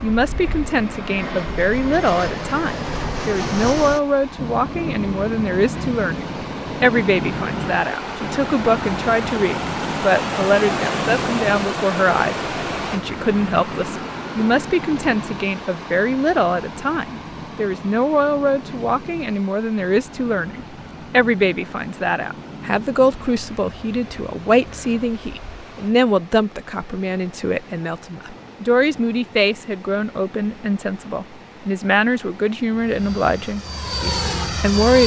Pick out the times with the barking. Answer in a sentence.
The barking can't be heard in this clip.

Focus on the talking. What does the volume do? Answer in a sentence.
The loudness of the talking stays about the same.